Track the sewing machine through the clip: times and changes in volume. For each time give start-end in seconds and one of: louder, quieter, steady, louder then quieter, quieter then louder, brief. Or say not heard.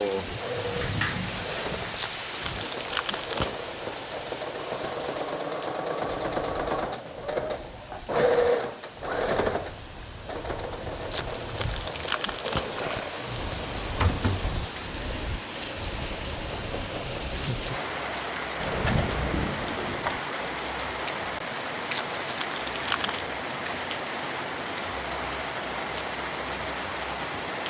0.2-17.6 louder then quieter.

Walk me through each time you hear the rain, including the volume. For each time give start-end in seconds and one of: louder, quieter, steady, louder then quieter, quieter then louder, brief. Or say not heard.
0.0-27.6 quieter then louder.